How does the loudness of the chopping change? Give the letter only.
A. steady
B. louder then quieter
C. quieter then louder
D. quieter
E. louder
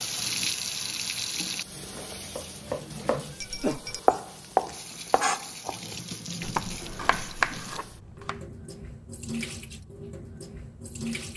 B.